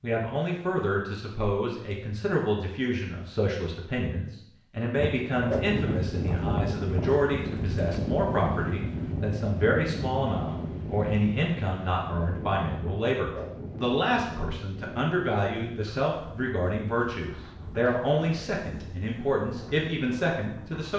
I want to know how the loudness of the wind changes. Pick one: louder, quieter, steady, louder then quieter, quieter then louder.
quieter.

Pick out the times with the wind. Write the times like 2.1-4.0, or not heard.
5.0-20.9.